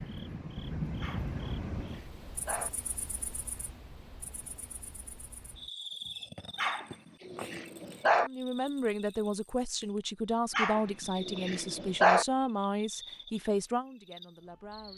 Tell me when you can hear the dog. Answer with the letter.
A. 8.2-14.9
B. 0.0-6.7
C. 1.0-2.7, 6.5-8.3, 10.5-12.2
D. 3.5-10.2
C.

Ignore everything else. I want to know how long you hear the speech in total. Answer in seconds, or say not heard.
7 s.